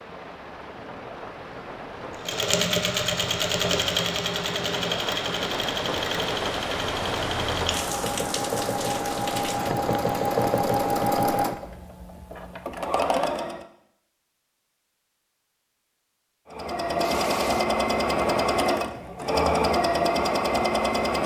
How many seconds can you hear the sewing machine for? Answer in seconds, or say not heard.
16 s.